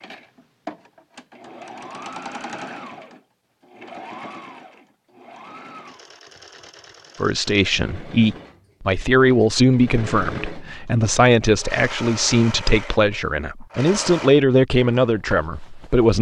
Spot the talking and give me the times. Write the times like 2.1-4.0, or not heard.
7.2-16.1.